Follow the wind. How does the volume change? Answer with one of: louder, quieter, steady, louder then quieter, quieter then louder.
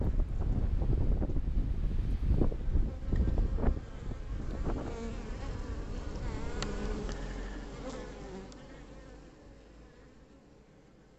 quieter.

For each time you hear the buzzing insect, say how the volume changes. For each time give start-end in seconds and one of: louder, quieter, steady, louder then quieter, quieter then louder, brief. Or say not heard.
0.0-11.1 louder then quieter.